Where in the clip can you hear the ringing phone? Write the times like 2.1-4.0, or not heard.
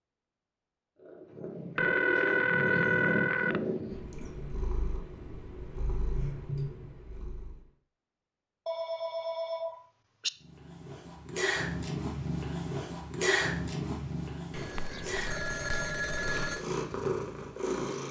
1.8-3.6, 8.7-10.3, 14.5-16.6.